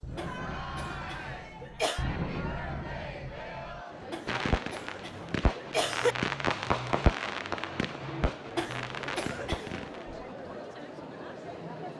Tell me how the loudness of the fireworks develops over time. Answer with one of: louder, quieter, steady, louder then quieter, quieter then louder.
louder then quieter.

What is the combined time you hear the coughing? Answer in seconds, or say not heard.
5 s.